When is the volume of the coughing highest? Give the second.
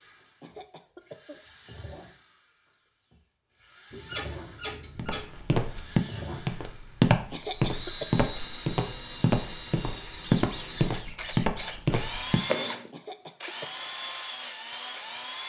8 s.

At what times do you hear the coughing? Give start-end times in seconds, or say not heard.
0.4-1.4, 7.3-8.2, 12.9-13.7.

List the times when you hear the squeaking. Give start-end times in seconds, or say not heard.
3.9-5.3, 10.2-12.5.